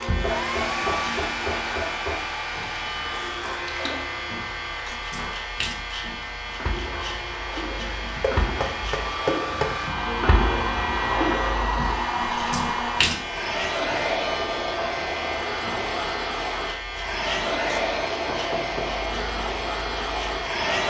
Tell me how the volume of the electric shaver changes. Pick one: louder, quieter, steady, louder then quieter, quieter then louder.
steady.